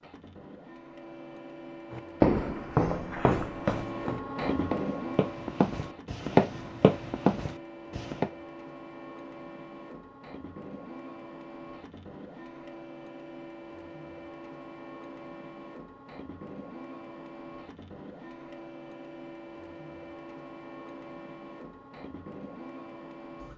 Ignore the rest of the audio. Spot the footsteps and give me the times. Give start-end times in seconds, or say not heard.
1.9-8.3.